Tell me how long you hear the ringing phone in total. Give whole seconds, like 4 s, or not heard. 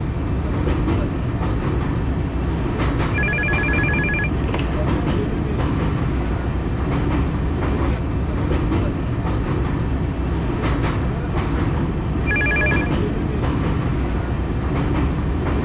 2 s.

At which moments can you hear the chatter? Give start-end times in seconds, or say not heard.
not heard.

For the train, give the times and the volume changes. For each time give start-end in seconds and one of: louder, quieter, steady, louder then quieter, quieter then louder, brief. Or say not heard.
0.0-15.6 steady.